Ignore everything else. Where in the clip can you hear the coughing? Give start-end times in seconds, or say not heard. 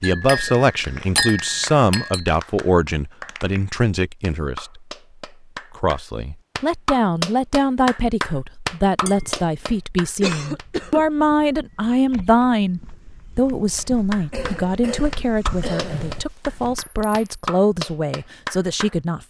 0.2-1.1, 10.2-11.1, 14.3-16.2.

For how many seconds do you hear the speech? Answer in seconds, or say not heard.
18 s.